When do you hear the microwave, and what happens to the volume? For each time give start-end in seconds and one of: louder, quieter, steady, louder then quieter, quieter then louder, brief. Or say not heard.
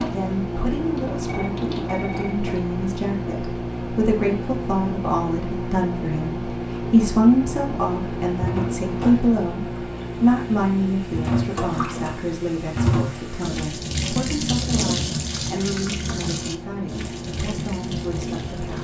0.0-18.7 quieter.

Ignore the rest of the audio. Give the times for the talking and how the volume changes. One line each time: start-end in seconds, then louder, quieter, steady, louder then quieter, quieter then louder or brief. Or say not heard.
0.0-18.7 louder then quieter.